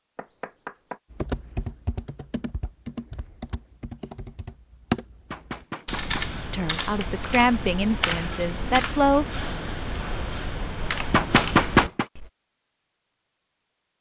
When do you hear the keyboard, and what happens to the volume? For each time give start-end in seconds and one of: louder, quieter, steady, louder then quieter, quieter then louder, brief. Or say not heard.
1.1-12.3 louder.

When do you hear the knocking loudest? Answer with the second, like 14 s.
12 s.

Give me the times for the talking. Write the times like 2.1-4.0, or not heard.
6.5-9.2.